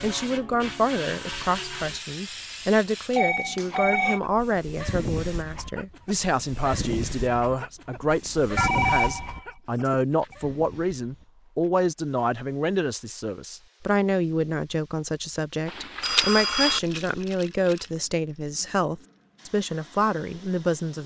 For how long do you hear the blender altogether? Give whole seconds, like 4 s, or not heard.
not heard.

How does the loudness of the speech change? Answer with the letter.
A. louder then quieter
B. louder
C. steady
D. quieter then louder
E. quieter
C.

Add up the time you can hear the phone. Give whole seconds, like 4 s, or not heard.
4 s.